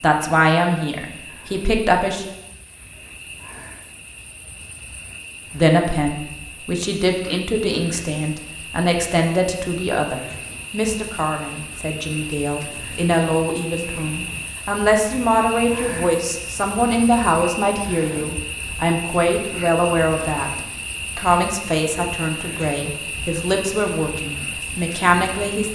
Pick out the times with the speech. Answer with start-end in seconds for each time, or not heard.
0.0-2.3, 5.5-25.7.